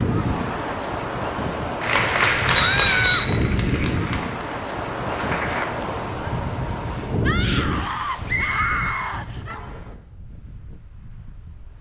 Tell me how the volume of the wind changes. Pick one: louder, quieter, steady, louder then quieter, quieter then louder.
quieter.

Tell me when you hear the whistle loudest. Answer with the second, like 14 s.
3 s.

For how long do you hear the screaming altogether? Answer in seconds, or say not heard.
3 s.